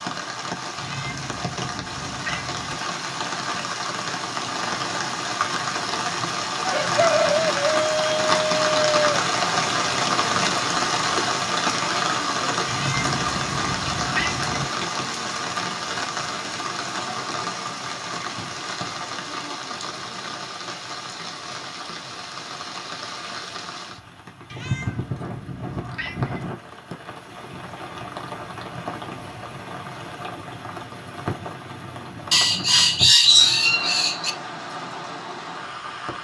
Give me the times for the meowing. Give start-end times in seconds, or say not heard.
0.8-2.8, 12.7-14.7, 24.5-26.5.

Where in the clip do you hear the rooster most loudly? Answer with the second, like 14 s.
33 s.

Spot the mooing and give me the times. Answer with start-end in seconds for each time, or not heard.
not heard.